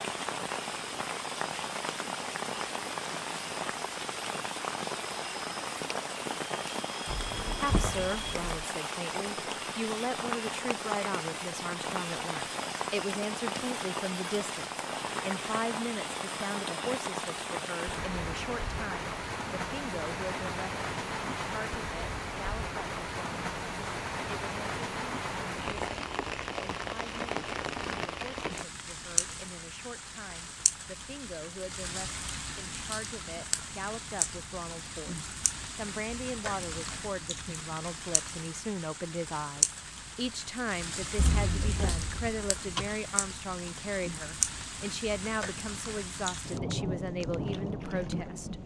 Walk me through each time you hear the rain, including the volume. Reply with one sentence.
You can hear the rain from 0.0 to 48.6 s, at a steady volume.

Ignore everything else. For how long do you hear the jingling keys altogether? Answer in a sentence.
You can hear the jingling keys for 3 seconds altogether.